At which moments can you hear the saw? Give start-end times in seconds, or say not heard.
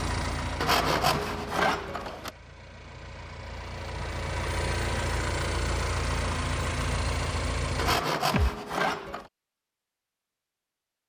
0.6-2.3, 7.8-9.3.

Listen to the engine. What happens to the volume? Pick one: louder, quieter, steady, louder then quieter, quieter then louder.
quieter then louder.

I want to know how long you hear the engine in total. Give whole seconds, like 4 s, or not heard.
8 s.